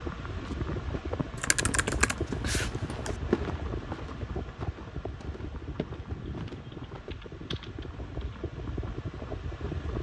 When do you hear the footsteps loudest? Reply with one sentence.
The loudest moment of the footsteps is at 3 seconds.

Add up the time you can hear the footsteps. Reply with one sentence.
The footsteps can be heard for 7 seconds in total.